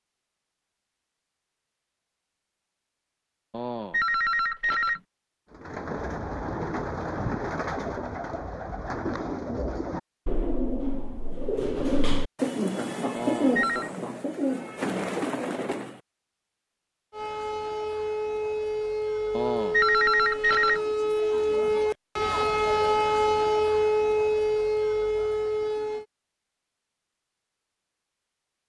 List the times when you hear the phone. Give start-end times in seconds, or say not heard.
3.5-5.0, 13.2-13.9, 19.4-20.8.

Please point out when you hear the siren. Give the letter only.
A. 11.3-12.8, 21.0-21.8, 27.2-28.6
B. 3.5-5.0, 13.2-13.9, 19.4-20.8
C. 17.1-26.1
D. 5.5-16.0
C.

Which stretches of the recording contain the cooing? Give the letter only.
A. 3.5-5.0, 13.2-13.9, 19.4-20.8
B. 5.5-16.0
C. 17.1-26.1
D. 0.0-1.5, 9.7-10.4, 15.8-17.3
B.